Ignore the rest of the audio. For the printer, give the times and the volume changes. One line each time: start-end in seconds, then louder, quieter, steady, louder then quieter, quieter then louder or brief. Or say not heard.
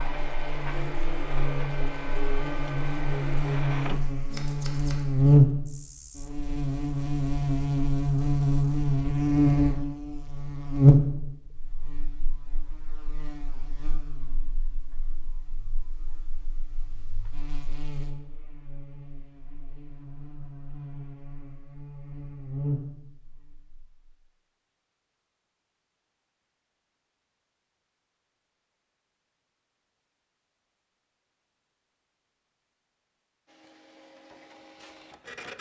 0.0-4.0 steady
33.5-35.5 brief.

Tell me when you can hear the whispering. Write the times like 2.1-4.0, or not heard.
not heard.